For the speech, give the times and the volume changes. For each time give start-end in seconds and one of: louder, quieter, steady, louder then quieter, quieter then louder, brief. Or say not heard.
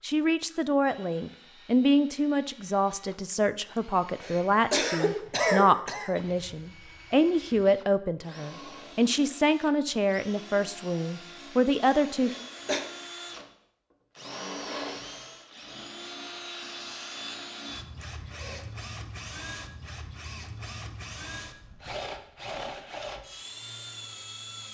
0.0-12.3 steady.